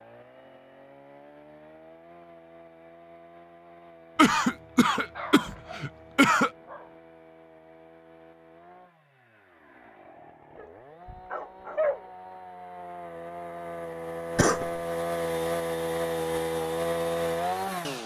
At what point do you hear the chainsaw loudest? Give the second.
17 s.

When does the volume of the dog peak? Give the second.
12 s.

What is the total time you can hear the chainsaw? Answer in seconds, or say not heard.
18 s.